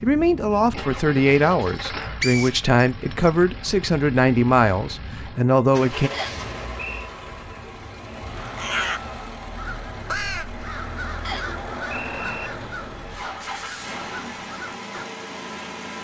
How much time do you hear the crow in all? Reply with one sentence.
You can hear the crow for 7 seconds altogether.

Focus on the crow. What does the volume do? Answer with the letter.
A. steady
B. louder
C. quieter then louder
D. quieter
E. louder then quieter
D.